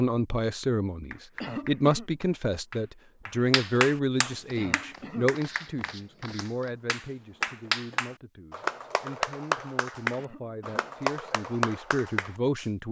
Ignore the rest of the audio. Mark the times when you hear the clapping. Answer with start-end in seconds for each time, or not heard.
1.1-12.7.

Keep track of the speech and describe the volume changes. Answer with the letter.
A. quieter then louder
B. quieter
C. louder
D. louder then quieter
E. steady
A.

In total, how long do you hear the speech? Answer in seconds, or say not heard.
13 s.